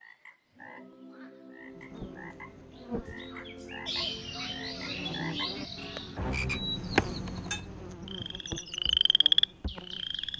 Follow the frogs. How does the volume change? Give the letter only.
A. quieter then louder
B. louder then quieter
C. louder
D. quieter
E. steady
C.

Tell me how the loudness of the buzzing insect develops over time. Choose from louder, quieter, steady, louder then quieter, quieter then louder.
louder then quieter.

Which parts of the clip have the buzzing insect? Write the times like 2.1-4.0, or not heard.
1.7-10.3.